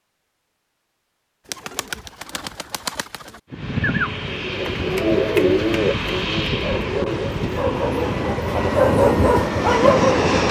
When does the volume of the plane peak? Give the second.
10 s.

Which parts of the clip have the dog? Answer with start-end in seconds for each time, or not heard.
6.5-10.4.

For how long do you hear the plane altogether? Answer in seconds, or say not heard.
7 s.